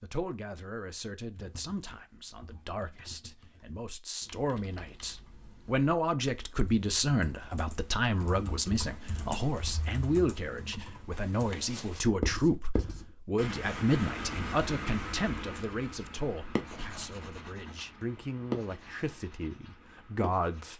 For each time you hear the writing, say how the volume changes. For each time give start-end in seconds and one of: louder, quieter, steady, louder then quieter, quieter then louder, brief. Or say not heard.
11.1-20.7 quieter.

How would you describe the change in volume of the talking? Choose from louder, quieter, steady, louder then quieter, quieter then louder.
louder then quieter.